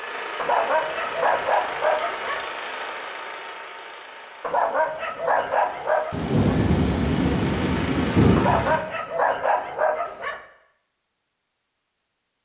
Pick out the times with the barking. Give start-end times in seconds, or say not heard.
0.3-2.5, 4.4-6.2, 8.3-10.4.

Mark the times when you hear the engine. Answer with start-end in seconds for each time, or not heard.
0.0-8.8.